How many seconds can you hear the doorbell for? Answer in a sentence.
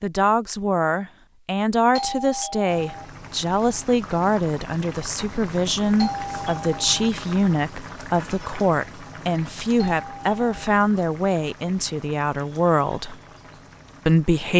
You can hear the doorbell for 3 seconds altogether.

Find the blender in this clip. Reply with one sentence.
You can't hear the blender here.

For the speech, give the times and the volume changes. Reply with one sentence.
The speech can be heard from 0.0 to 13.2 s, at a steady volume; and briefly from 14.1 to 14.5 s.